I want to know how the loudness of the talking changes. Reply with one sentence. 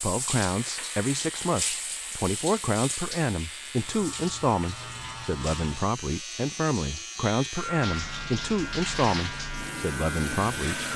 The loudness of the talking stays about the same.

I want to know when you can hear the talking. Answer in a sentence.
You can hear the talking from 0.0 to 10.9 s.